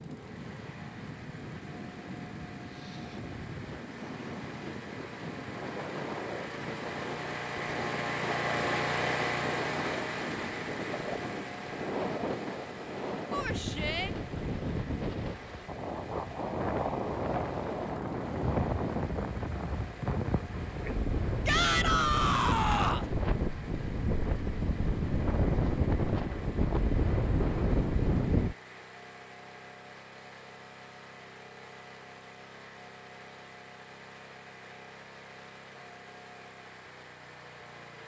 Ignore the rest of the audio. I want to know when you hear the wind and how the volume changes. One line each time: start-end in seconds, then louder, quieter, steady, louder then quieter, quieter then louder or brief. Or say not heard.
0.0-28.6 louder.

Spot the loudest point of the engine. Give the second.
9 s.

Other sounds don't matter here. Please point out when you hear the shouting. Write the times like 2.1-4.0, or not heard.
13.3-14.1, 21.4-23.1.